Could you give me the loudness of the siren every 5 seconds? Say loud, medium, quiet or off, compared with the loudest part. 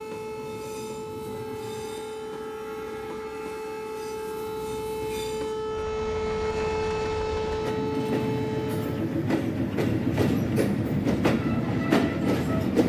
medium, loud, off.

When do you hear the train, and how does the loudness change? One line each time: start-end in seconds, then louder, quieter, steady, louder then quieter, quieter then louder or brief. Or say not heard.
0.0-12.8 louder.